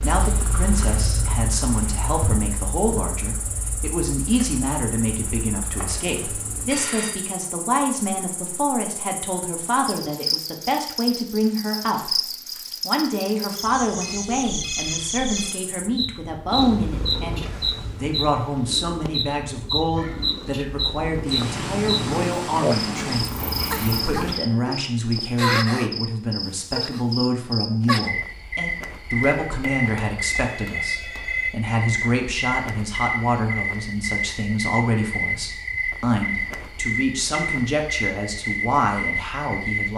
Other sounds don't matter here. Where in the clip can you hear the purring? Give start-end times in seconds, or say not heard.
0.0-6.8, 16.4-24.4.